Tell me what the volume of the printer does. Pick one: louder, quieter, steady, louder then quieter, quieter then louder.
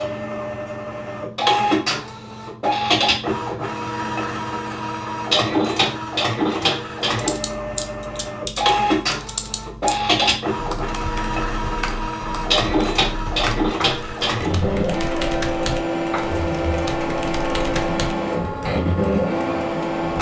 steady.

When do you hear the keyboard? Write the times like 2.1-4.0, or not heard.
7.0-18.9.